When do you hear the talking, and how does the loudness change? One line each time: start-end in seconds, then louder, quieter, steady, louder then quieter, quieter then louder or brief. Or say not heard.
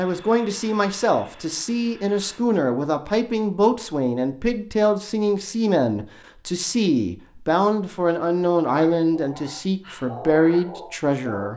0.0-11.5 steady.